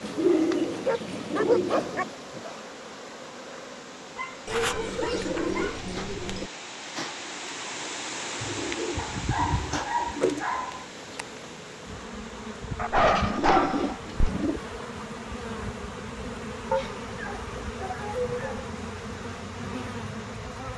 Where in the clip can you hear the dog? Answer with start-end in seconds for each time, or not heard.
0.8-2.0, 4.2-5.8, 8.9-10.8, 12.8-14.3, 16.7-18.6.